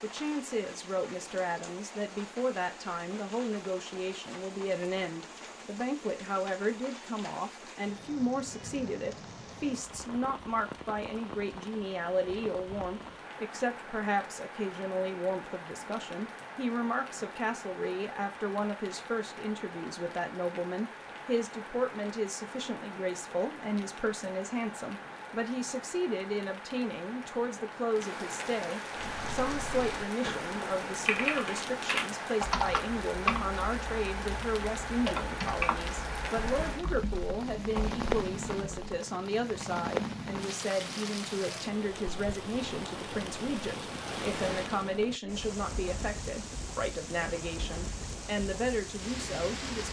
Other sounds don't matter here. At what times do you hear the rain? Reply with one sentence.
You can hear the rain from 0.0 to 49.8 s.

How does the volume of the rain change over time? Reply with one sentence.
The volume of the rain goes up.